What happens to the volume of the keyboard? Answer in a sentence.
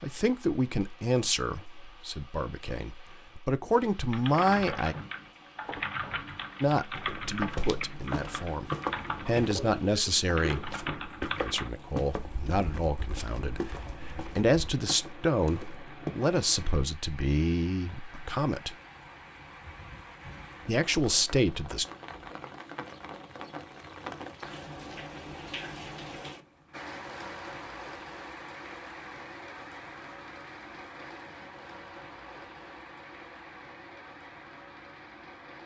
The loudness of the keyboard goes down.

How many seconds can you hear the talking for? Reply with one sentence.
The talking can be heard for 18 seconds in total.